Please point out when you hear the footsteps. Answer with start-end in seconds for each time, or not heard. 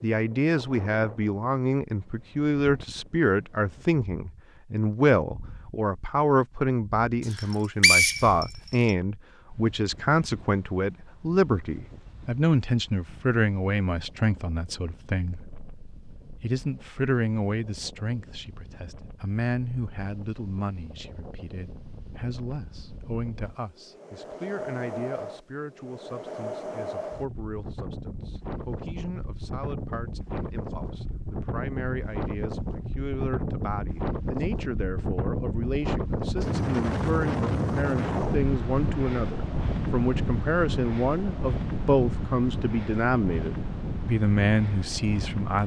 not heard.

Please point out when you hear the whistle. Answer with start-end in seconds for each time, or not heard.
7.3-8.9.